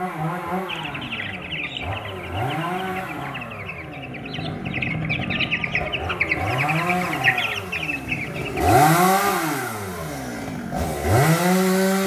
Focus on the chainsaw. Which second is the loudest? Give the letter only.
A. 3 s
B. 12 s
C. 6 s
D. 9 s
D.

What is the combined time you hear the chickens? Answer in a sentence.
The chickens can be heard for 8 seconds in total.